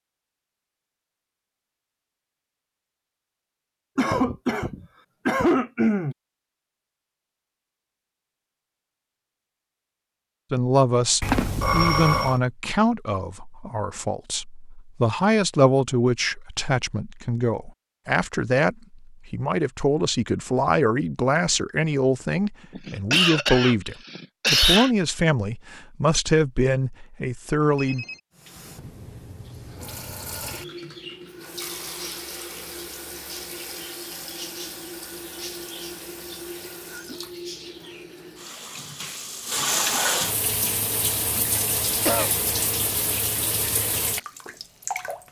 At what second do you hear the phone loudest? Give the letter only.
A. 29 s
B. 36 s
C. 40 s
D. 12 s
D.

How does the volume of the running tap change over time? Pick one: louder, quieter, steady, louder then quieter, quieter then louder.
louder.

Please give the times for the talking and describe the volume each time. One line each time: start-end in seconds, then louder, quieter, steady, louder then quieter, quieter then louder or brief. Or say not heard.
10.5-28.1 steady.